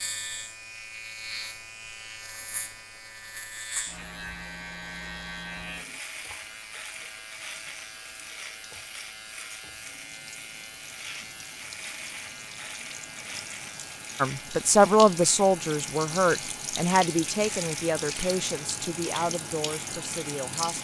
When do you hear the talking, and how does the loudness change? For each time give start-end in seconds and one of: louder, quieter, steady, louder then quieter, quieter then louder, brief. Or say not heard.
14.2-20.7 quieter.